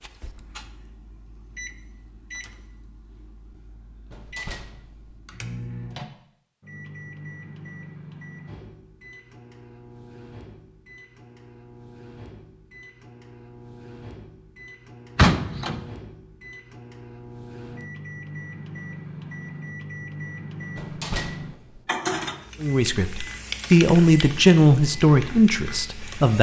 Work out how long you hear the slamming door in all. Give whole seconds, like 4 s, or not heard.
3 s.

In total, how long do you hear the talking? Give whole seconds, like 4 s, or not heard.
4 s.